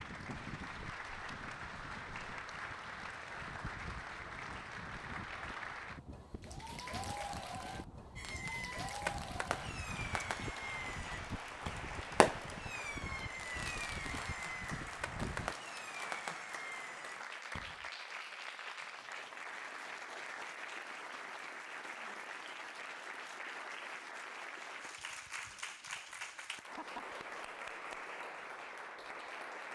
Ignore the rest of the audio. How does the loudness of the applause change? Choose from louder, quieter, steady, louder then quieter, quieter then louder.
steady.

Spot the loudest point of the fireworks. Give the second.
12 s.